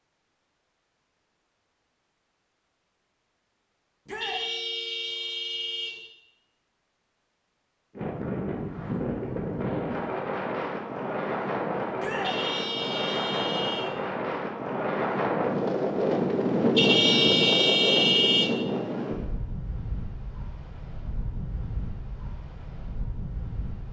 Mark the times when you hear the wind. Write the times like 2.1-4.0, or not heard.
8.0-23.8.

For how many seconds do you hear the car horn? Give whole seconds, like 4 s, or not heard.
5 s.